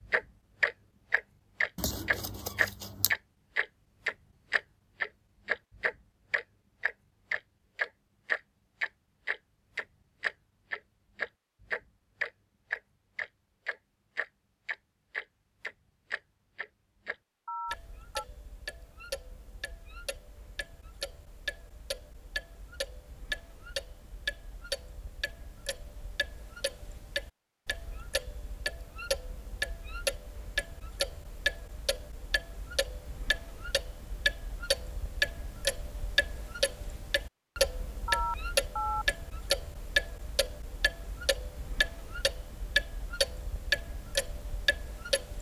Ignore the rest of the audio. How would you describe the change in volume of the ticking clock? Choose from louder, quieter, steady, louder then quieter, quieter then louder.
quieter then louder.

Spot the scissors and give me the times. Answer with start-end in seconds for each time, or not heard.
1.8-3.1.